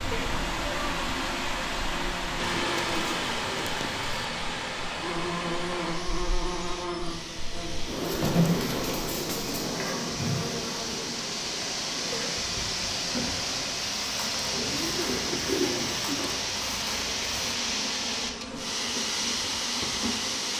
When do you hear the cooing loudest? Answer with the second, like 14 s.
16 s.